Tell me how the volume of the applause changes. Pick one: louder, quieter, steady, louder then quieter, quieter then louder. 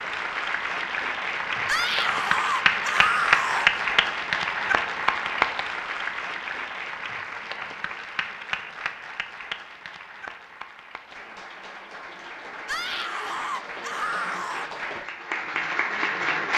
quieter then louder.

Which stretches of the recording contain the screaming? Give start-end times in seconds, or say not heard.
1.6-3.8, 12.7-14.8.